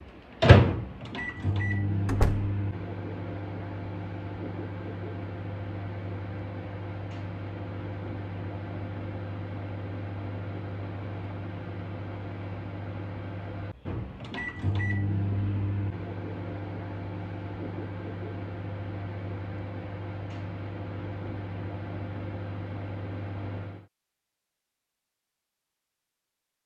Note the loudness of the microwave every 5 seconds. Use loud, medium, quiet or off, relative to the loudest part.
loud, medium, medium, medium, medium, off.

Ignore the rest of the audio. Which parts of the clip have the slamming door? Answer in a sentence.
The slamming door can be heard from 2.0 to 2.5 s.